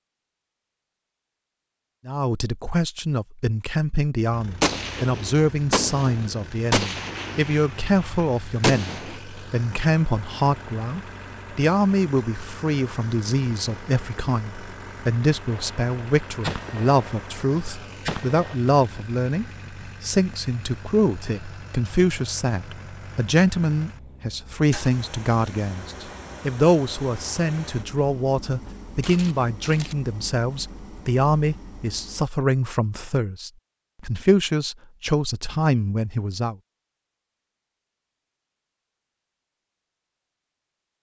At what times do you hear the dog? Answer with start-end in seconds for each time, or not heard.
not heard.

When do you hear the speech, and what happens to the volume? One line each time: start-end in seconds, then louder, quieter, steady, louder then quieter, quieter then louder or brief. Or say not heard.
2.0-36.5 steady.